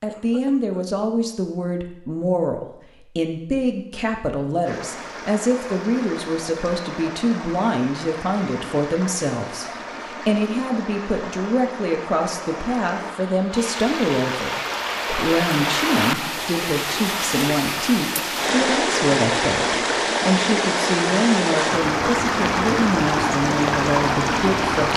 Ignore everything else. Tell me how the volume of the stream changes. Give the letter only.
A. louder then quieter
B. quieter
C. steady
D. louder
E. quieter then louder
D.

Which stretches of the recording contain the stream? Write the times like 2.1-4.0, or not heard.
4.7-24.9.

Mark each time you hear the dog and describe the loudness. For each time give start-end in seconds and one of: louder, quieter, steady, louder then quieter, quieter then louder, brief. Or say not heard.
not heard.